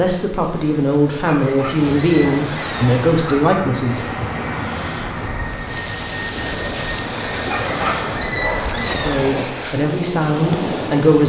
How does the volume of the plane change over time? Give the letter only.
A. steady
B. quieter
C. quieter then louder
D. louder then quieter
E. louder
A.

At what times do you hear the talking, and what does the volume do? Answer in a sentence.
The talking can be heard from 0.0 to 4.6 s, at a steady volume; and briefly from 8.8 to 11.2 s.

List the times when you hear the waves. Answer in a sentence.
You can hear the waves from 0.0 to 11.2 s.